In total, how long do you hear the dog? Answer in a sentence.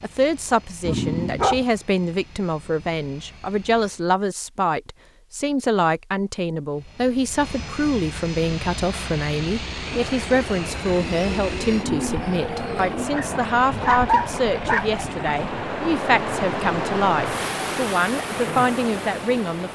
You can hear the dog for 3 seconds altogether.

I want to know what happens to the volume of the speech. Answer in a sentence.
The loudness of the speech stays about the same.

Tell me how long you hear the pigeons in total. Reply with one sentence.
You can hear the pigeons for 2 seconds altogether.